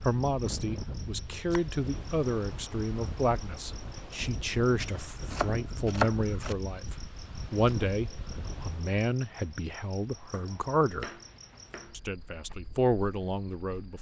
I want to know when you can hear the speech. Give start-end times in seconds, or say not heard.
0.1-11.1, 11.9-13.9.